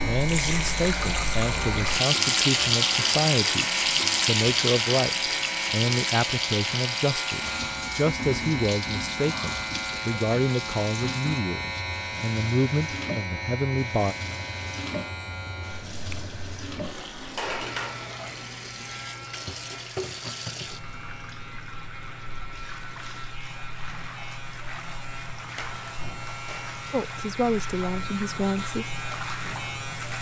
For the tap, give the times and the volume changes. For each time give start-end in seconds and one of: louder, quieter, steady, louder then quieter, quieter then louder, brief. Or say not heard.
0.0-30.1 quieter.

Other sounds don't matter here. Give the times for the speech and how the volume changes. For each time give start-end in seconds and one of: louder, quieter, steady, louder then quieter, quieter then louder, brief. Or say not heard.
0.0-14.2 steady
26.9-29.0 brief.